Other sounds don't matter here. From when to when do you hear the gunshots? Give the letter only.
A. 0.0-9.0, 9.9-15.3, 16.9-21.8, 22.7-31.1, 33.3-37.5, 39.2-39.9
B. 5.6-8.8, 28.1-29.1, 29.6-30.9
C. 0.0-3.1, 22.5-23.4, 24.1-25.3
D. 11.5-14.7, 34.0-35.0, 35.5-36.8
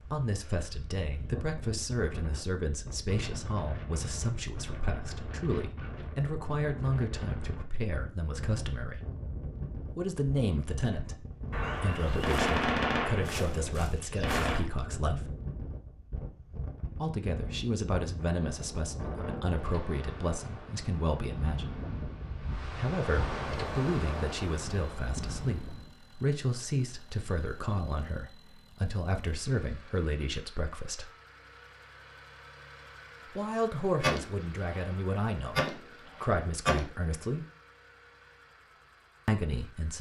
D.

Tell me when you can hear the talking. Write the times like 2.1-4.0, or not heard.
0.0-9.0, 9.9-15.3, 16.9-21.8, 22.7-31.1, 33.3-37.5, 39.2-39.9.